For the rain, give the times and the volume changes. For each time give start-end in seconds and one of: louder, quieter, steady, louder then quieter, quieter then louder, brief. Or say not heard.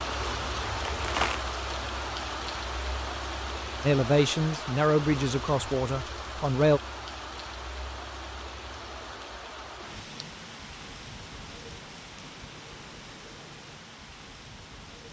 0.0-15.0 quieter.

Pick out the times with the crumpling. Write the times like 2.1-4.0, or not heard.
0.8-1.4.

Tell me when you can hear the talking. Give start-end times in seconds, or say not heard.
3.8-6.8.